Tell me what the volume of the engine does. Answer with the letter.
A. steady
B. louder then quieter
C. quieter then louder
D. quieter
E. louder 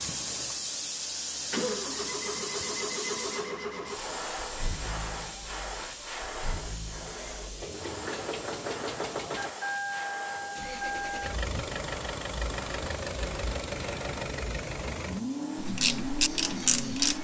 C.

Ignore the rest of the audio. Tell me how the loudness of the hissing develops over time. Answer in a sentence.
The volume of the hissing goes down.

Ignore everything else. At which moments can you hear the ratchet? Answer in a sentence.
The ratchet can be heard from 15.6 to 17.1 s.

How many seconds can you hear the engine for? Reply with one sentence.
You can hear the engine for 17 seconds altogether.